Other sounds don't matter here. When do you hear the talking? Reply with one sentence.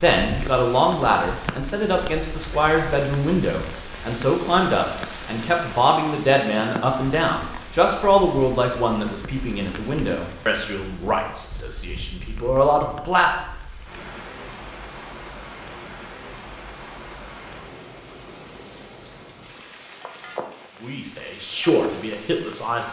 You can hear the talking from 0.0 to 13.3 s and from 20.8 to 22.8 s.